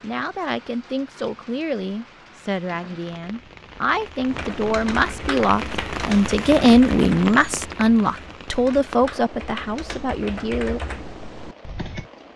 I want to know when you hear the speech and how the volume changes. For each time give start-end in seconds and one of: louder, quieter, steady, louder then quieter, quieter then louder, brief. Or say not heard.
0.0-10.8 louder then quieter.